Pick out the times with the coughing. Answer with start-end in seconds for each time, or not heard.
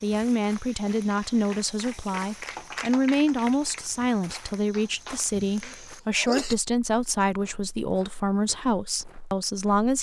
5.4-6.5.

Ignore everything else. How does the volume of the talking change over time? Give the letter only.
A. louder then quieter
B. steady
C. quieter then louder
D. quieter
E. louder
B.